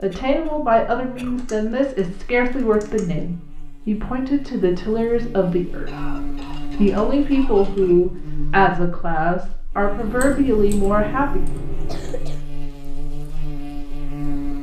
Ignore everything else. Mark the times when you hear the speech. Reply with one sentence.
The speech can be heard from 0.0 to 11.4 s.